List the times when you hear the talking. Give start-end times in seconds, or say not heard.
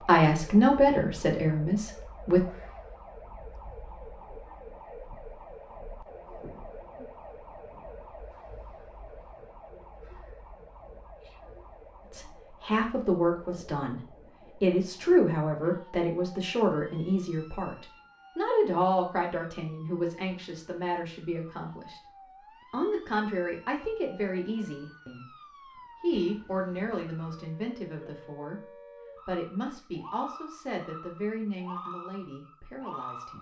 0.1-2.5, 12.1-22.0, 22.7-28.6, 29.2-33.3.